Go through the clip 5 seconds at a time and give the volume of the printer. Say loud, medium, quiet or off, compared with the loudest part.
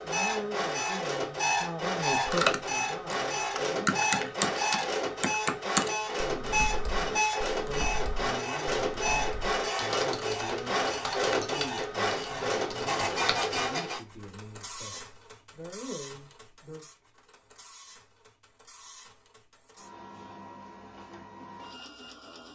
loud, loud, loud, quiet, quiet.